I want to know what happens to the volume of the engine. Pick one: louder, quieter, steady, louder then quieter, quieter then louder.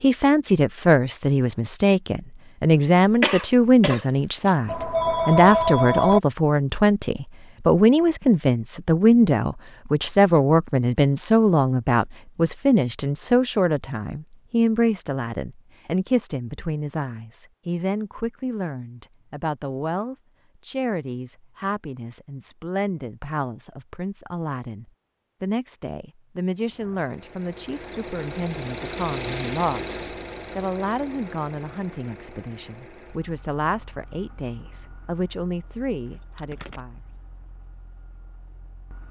quieter.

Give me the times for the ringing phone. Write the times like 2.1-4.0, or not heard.
4.7-6.2, 36.4-36.8.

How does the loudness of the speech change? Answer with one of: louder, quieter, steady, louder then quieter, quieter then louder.
quieter.